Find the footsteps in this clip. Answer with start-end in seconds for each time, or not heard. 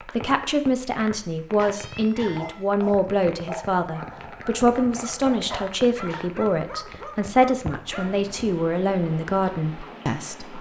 not heard.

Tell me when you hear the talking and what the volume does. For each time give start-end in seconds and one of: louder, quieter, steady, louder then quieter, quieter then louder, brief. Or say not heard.
0.1-10.5 steady.